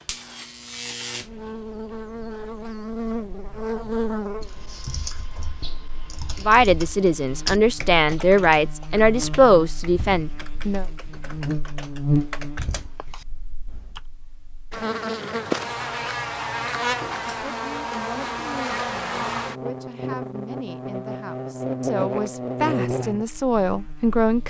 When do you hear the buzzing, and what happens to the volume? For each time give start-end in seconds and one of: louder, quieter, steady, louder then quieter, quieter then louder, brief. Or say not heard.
0.0-24.4 quieter then louder.